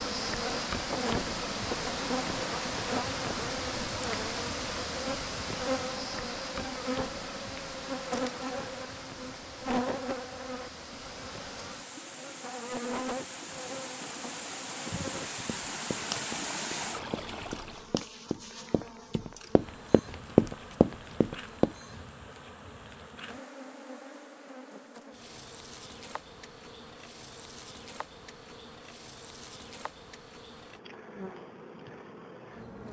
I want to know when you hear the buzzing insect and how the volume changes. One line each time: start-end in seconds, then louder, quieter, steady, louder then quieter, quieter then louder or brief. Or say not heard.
0.0-32.8 quieter.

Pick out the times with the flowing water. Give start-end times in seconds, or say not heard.
0.0-18.0.